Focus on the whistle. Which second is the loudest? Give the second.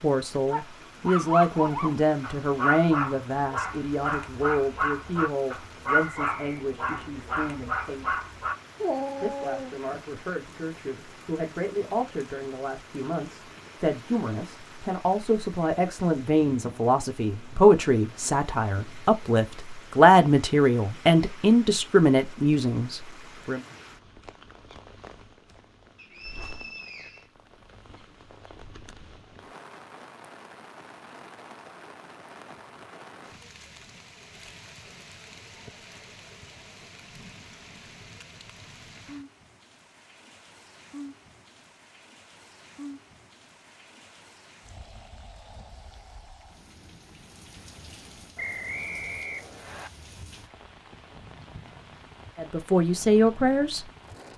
49 s.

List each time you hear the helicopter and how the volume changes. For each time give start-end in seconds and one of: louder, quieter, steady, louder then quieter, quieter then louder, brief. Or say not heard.
not heard.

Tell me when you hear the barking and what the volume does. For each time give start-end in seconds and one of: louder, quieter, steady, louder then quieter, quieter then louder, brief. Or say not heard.
0.5-9.8 steady.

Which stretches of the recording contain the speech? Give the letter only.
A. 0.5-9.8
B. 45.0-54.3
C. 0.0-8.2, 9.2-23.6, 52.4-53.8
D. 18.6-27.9
C.